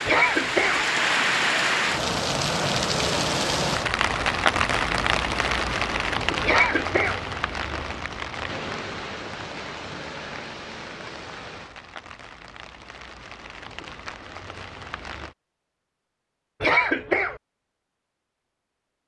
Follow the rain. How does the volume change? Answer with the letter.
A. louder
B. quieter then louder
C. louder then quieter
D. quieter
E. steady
D.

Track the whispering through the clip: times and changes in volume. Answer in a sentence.
The whispering can't be heard in this clip.